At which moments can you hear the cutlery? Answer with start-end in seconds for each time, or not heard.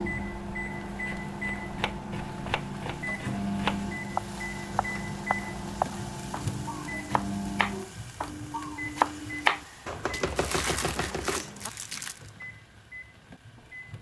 not heard.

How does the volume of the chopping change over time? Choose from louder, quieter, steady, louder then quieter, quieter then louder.
louder.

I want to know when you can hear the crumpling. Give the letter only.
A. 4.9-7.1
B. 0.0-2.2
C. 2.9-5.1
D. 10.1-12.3
D.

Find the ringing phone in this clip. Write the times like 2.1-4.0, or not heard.
not heard.